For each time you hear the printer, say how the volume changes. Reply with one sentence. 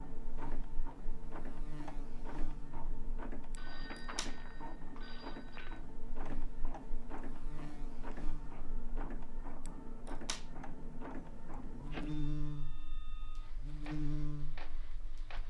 You can hear the printer from 0.0 to 15.4 s, getting quieter.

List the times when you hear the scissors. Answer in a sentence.
The scissors can be heard from 3.5 to 4.3 s and from 9.7 to 10.4 s.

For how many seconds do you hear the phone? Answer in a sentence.
You can hear the phone for 2 seconds altogether.